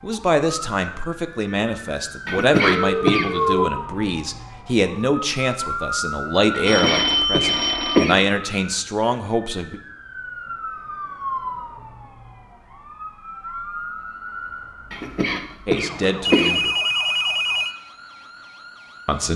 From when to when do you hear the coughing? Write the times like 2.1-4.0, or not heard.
2.2-3.3, 6.5-8.2, 14.9-16.6.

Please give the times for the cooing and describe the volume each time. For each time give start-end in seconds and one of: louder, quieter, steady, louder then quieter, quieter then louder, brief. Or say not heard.
not heard.